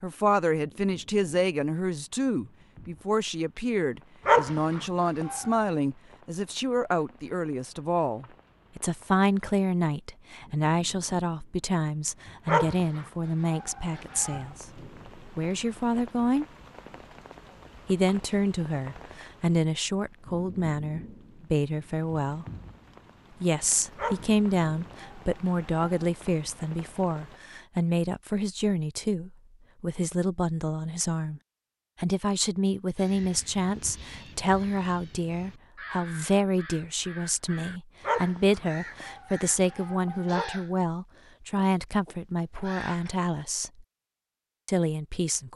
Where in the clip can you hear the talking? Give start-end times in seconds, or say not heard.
0.0-16.4, 17.9-22.4, 23.4-31.4, 32.0-43.9, 44.6-45.5.